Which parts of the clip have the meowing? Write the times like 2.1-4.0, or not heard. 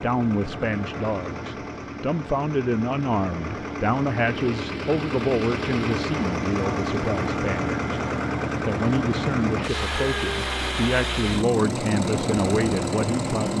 not heard.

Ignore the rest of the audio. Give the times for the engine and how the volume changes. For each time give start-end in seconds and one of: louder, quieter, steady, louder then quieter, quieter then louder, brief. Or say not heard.
0.0-13.5 louder.